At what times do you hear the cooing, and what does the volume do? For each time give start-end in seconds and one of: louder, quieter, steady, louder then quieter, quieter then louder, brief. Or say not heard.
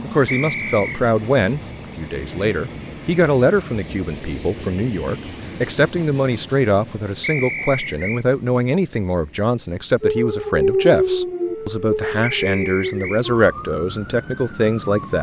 not heard.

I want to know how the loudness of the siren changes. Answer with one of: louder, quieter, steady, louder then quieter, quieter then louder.
quieter.